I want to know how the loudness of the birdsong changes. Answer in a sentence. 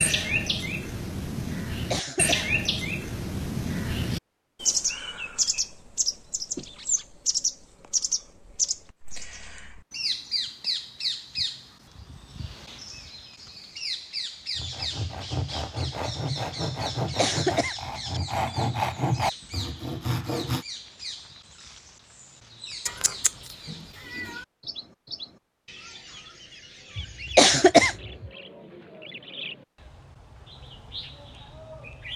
The volume of the birdsong goes down.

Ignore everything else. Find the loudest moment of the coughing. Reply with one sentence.
The loudest moment of the coughing is at 28 seconds.